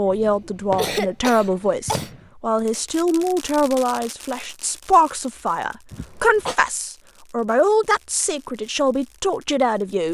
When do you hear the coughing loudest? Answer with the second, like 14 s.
1 s.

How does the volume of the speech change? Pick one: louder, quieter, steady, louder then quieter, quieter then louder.
steady.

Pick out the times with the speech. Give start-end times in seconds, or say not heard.
0.0-10.1.